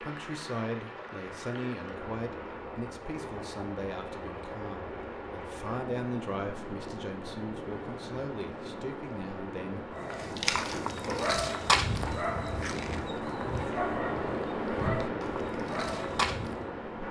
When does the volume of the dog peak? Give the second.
12 s.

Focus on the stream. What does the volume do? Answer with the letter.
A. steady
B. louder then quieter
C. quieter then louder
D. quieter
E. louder
E.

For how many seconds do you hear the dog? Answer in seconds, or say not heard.
7 s.